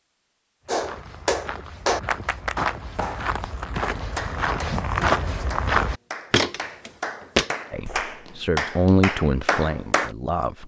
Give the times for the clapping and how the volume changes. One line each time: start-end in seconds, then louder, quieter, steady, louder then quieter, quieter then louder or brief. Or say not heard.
0.7-10.1 quieter then louder.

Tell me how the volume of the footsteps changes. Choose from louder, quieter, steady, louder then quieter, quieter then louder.
louder.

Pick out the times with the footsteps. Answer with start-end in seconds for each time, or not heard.
0.7-8.1.